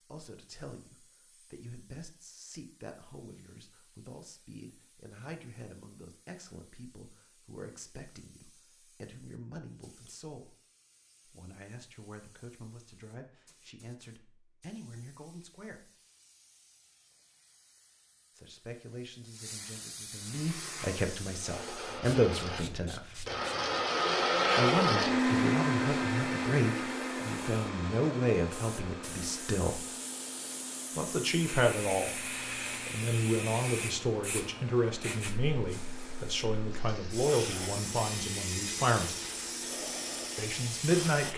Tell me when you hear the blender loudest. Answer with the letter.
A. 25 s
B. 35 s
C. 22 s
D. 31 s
A.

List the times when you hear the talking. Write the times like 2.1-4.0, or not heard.
0.1-10.6, 11.2-15.9, 18.4-23.2, 24.6-29.9, 30.9-39.1, 40.4-41.3.